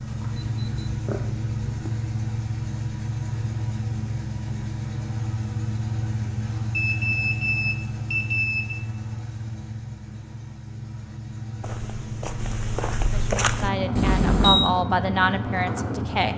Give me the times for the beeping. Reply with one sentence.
The beeping can be heard from 0.5 to 1.9 s, from 6.7 to 8.8 s and from 13.9 to 14.7 s.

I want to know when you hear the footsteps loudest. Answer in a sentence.
The volume of the footsteps peaks at 13 seconds.